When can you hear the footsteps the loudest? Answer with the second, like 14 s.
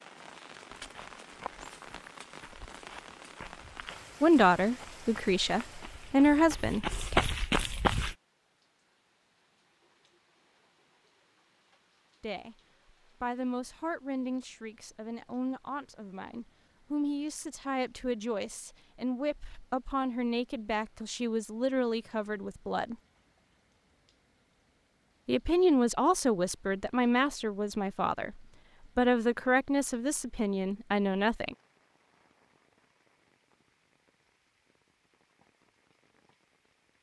7 s.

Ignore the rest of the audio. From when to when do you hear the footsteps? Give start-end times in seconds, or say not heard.
0.8-8.2.